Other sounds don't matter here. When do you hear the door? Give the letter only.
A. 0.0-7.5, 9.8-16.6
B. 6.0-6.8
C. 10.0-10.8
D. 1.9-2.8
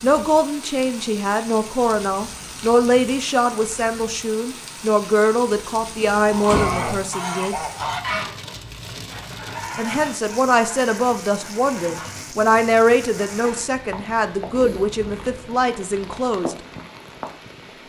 B.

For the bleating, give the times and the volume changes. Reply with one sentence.
You can't hear the bleating here.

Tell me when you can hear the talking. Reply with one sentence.
You can hear the talking from 0.0 to 7.5 s and from 9.8 to 16.6 s.